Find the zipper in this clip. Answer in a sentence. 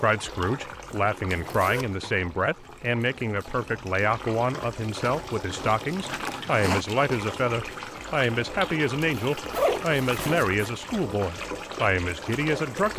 You can hear the zipper from 1.3 to 1.9 s, from 5.5 to 6.8 s and from 9.2 to 10.7 s.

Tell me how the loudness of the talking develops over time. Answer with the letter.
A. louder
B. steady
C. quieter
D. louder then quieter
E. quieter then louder
B.